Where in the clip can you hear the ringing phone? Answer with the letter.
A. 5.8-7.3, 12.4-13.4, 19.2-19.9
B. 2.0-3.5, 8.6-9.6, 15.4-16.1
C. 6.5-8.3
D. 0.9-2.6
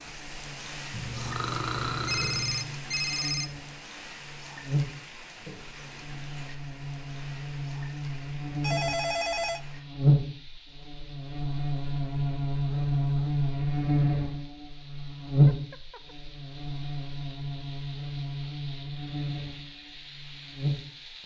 B.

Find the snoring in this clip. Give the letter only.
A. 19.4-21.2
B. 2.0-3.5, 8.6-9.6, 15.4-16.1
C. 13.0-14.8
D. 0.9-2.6
D.